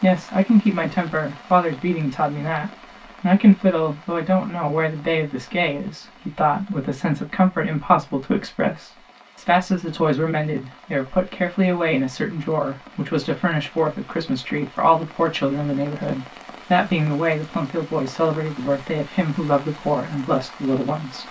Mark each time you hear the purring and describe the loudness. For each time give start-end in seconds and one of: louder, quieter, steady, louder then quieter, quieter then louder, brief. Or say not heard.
not heard.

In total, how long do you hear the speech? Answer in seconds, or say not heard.
21 s.